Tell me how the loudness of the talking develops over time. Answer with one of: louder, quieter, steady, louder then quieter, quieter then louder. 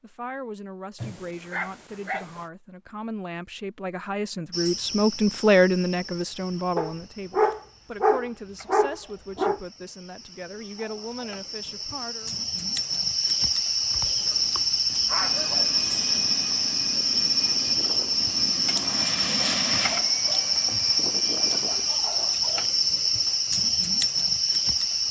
louder then quieter.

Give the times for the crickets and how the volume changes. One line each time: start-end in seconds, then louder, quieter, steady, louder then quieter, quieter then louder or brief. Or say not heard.
4.5-25.0 louder.